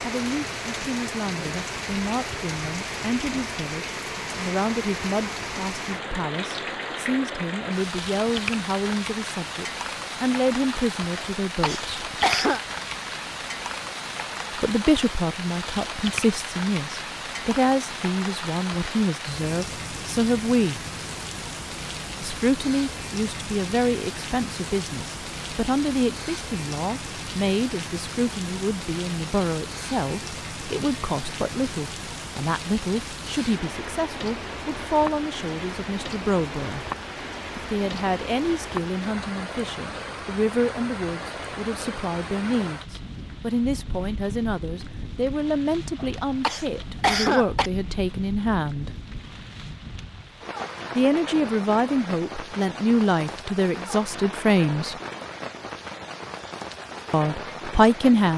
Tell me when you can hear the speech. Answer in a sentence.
You can hear the speech from 0.0 to 11.9 s, from 14.6 to 20.9 s, from 22.2 to 36.9 s, from 37.5 to 48.9 s, from 51.0 to 55.0 s and from 57.1 to 58.3 s.